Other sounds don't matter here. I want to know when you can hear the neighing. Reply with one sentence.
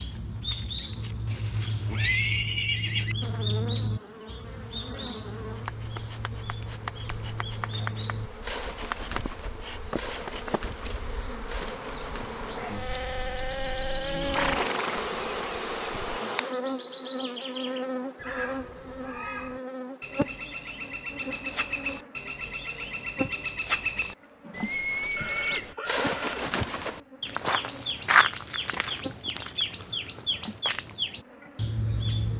The neighing can be heard from 1.2 to 3.1 s, from 14.2 to 15.5 s and from 25.1 to 26.6 s.